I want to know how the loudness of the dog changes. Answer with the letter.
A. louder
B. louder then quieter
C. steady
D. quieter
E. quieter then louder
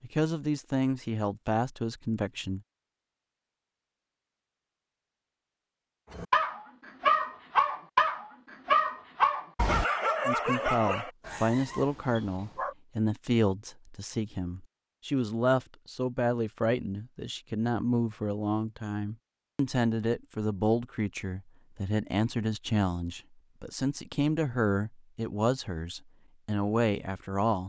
D.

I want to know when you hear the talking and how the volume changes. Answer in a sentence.
You can hear the talking briefly from 0.0 to 2.6 s; and from 10.2 to 27.6 s, at a steady volume.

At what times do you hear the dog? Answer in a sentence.
You can hear the dog from 6.1 to 12.8 s.